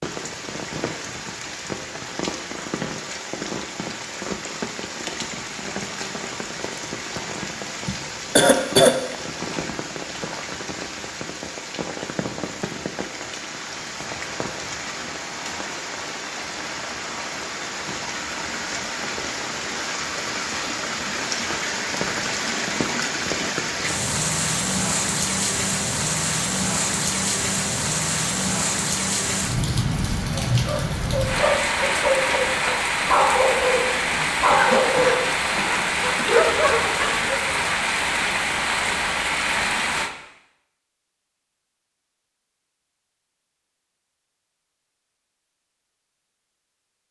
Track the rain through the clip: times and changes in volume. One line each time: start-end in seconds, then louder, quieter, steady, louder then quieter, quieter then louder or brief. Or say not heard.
0.0-40.1 louder.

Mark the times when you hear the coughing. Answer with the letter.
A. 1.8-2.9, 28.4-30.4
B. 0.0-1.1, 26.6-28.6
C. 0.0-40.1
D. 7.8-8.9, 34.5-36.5
D.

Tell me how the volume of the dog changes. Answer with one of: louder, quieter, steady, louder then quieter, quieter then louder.
steady.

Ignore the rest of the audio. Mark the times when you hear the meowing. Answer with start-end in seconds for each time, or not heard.
not heard.